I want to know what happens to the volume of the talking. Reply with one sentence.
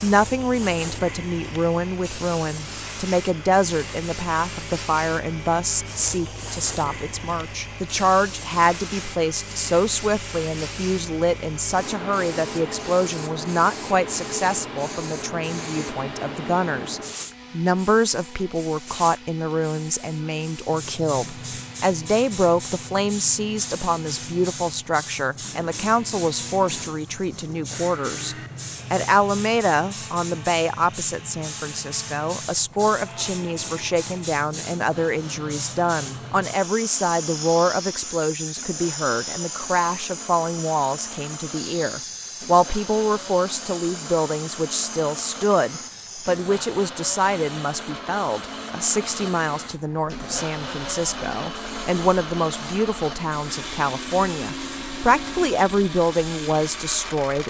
The loudness of the talking stays about the same.